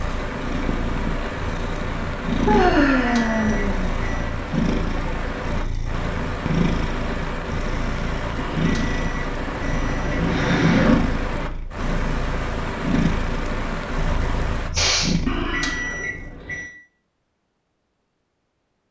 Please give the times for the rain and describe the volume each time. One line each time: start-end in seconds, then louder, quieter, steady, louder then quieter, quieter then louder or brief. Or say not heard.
0.0-14.7 steady.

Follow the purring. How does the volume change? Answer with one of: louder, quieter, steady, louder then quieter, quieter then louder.
steady.